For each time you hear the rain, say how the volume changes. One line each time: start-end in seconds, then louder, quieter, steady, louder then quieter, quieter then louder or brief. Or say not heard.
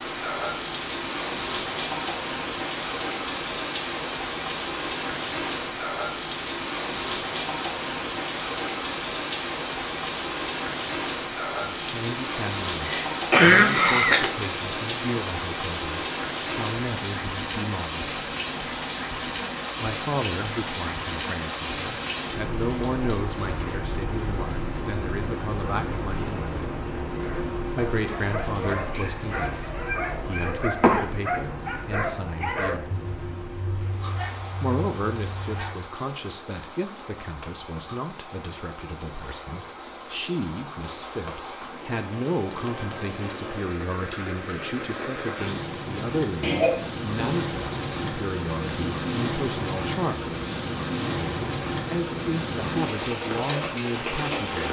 0.0-54.6 quieter then louder.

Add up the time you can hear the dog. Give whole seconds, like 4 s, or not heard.
9 s.